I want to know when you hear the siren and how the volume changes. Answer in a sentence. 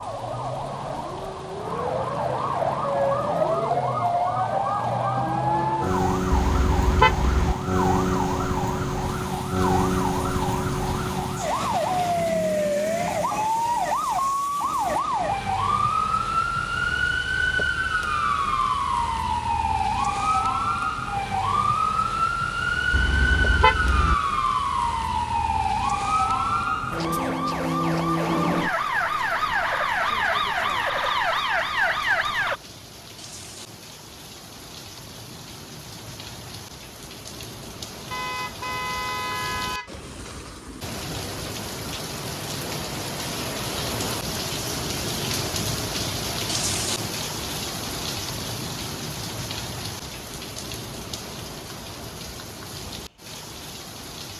You can hear the siren from 0.0 to 32.6 s, at a steady volume.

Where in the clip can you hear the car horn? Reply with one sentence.
You can hear the car horn from 6.3 to 7.5 s, from 22.9 to 24.1 s and from 38.1 to 39.9 s.